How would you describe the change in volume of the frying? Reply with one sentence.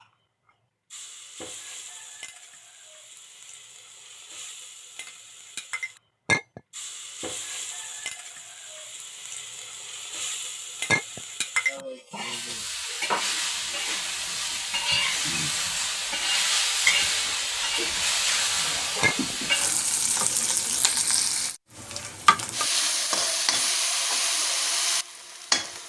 The volume of the frying goes up.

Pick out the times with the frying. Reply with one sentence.
You can hear the frying from 0.0 to 25.8 s.